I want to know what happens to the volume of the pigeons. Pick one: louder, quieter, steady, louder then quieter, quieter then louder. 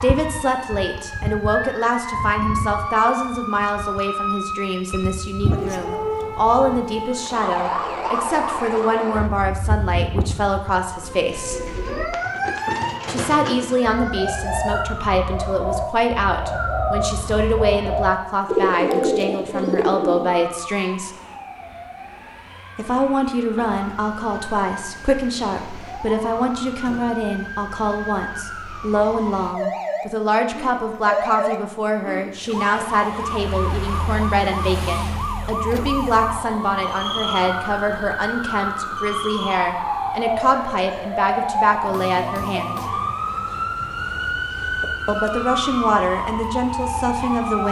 louder.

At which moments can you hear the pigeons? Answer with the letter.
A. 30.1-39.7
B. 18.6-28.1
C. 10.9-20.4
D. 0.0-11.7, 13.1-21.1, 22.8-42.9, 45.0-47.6
C.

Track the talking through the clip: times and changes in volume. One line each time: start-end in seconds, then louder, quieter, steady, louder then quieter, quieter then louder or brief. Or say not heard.
0.0-11.7 steady
13.1-21.1 steady
22.8-42.9 steady
45.0-47.6 brief.